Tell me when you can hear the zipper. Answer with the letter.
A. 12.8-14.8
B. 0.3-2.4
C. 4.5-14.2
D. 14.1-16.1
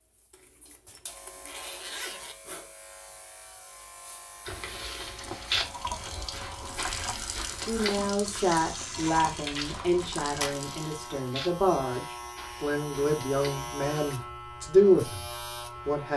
B.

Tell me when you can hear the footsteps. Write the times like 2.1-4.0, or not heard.
4.5-14.2.